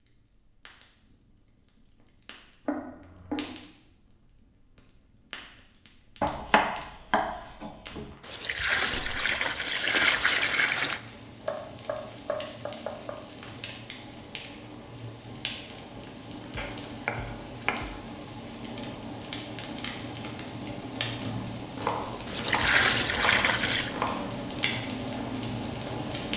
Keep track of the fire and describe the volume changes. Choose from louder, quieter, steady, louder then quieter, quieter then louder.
louder.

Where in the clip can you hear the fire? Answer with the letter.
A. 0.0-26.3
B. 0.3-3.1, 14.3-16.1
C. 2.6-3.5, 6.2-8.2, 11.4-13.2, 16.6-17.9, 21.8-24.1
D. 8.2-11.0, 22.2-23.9
A.